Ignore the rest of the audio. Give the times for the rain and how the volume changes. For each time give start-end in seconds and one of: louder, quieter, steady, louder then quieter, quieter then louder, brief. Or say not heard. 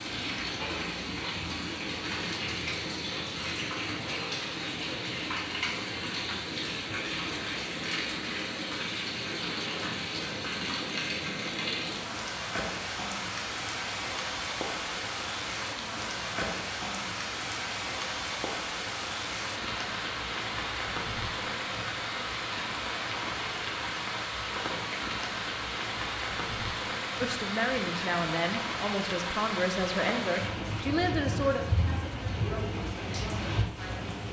0.0-34.2 steady.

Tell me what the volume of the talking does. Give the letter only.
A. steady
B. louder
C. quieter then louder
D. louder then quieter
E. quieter
E.